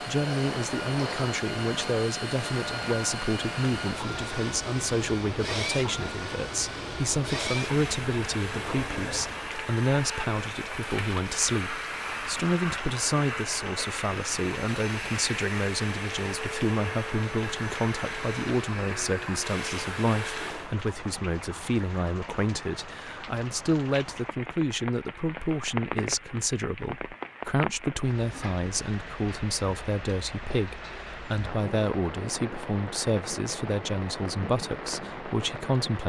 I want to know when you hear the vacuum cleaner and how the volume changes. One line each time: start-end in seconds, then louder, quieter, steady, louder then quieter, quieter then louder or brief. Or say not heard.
0.0-20.7 steady.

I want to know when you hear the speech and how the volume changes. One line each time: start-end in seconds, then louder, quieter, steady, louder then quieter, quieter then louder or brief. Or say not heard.
0.1-36.0 steady.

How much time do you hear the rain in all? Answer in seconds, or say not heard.
36 s.